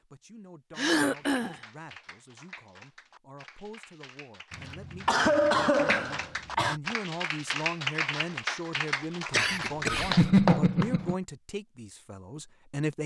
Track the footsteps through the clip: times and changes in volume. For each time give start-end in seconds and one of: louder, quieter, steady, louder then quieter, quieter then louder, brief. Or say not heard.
not heard.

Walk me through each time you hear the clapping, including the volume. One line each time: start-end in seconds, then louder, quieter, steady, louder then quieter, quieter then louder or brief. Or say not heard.
0.9-10.9 louder.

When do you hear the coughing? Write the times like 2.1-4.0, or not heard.
0.8-1.6, 4.5-6.8, 9.3-11.2.